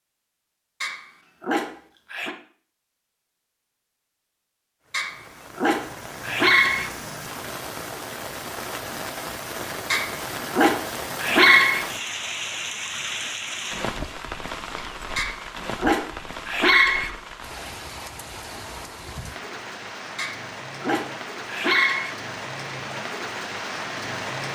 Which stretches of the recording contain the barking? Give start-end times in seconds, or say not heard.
0.8-2.4, 4.9-6.9, 9.9-11.8, 15.2-17.1, 20.1-22.1.